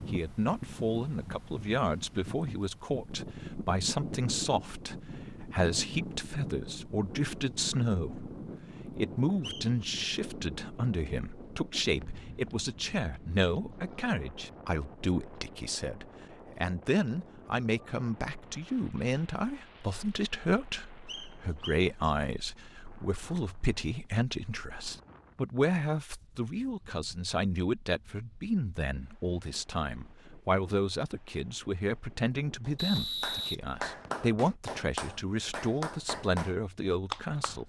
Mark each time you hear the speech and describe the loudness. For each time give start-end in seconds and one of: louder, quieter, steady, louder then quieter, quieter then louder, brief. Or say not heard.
0.1-37.6 steady.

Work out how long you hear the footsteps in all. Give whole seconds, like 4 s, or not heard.
not heard.